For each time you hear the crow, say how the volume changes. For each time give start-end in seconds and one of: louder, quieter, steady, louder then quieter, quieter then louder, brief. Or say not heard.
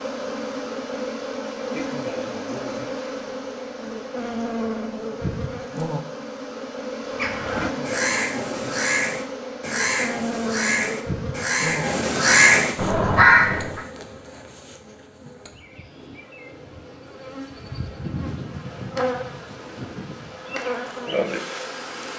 7.0-13.8 louder.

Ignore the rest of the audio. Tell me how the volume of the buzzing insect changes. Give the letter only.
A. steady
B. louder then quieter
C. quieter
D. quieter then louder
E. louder
D.